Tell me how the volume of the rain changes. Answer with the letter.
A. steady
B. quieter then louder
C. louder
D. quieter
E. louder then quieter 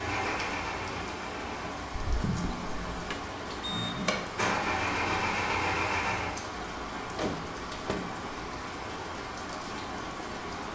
A.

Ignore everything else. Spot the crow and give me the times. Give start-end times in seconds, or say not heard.
not heard.